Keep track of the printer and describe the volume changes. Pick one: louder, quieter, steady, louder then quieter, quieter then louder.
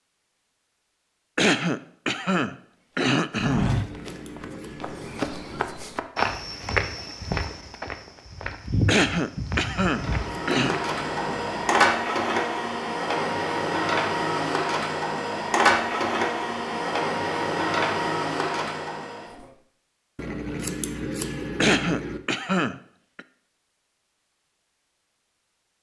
steady.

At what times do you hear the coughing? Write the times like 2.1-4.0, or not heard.
1.4-3.7, 8.8-10.8, 21.6-23.2.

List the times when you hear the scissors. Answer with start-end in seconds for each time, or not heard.
3.6-5.6, 10.1-11.8, 20.1-22.2.